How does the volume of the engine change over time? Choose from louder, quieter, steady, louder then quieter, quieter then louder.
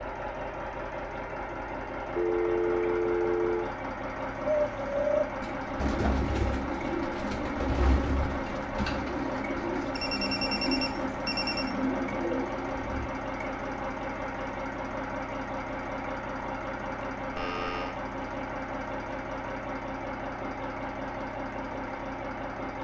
steady.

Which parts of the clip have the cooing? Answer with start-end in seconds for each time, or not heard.
4.3-13.1.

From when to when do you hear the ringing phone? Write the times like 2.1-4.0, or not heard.
2.1-3.7, 9.9-11.8, 17.4-17.9.